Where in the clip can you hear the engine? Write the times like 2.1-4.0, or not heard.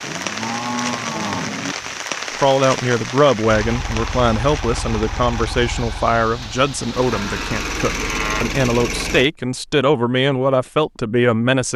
3.5-9.3.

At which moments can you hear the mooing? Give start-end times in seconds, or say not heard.
0.0-1.8, 7.0-8.6.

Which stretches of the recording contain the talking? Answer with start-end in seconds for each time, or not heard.
2.4-11.7.